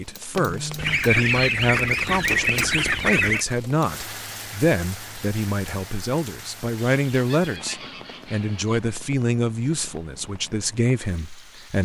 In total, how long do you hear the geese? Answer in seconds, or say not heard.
5 s.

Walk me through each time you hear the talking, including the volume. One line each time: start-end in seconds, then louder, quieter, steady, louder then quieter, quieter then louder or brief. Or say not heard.
0.0-11.8 steady.